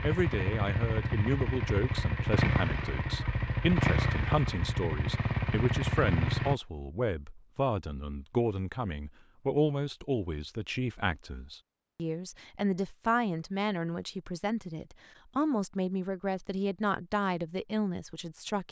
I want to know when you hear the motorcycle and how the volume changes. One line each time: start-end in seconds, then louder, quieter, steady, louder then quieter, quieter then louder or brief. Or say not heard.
0.0-6.5 steady.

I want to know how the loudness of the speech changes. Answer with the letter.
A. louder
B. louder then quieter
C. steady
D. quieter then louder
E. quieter
C.